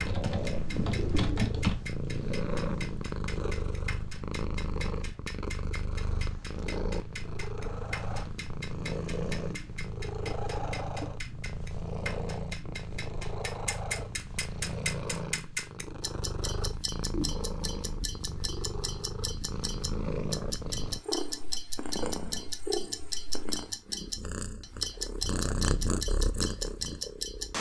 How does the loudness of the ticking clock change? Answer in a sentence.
The volume of the ticking clock goes up.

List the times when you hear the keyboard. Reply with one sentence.
You can hear the keyboard from 0.0 to 1.8 s.